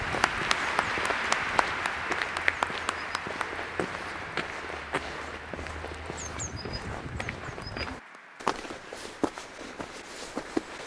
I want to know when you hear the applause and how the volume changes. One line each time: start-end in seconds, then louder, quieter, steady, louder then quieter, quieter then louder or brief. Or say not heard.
0.0-10.8 quieter.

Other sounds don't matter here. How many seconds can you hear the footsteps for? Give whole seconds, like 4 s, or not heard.
11 s.